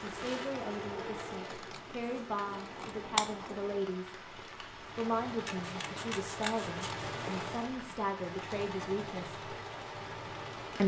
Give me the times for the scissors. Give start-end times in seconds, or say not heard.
1.5-3.5, 5.5-7.0.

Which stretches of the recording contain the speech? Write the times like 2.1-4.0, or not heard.
0.0-9.4.